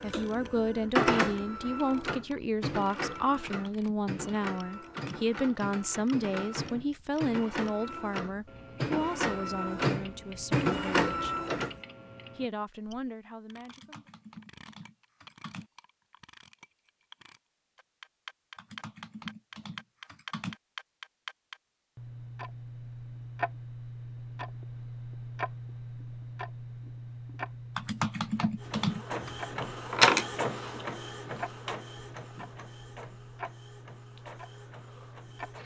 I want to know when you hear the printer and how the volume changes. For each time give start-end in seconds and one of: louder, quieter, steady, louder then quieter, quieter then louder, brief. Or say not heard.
0.0-11.8 quieter then louder
28.6-35.6 quieter.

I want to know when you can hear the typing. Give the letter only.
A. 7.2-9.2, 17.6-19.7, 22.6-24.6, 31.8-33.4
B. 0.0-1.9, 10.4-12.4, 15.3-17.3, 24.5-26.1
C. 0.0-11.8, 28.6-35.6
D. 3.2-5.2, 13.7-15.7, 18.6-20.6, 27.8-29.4
D.